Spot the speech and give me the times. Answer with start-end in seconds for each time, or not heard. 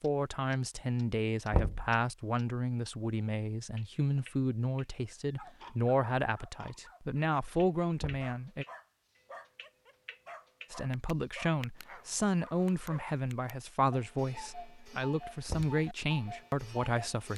0.0-8.7, 10.7-17.3.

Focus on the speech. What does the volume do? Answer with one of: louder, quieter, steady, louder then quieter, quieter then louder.
steady.